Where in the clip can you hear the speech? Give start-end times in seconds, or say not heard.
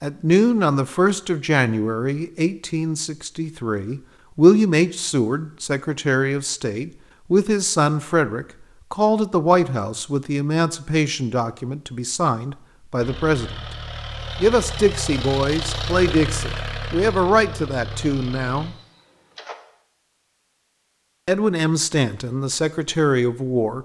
0.0-13.6, 14.4-18.8, 21.2-23.8.